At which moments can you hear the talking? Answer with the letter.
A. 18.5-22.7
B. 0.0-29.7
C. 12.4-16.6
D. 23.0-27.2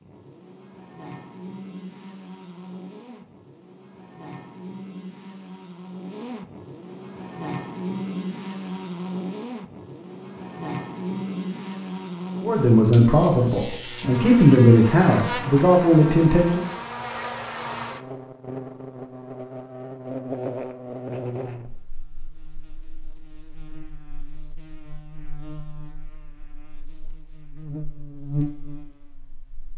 C.